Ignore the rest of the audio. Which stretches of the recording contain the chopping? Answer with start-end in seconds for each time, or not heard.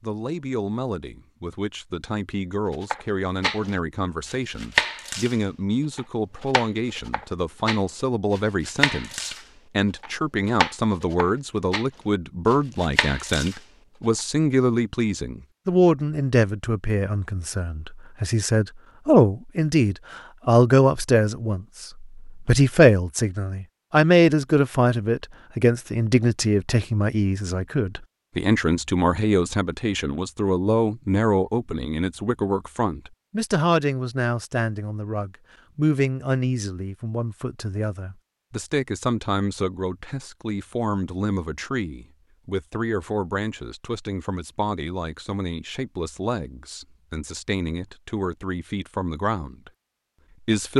2.7-5.3, 6.0-11.8, 12.4-13.6.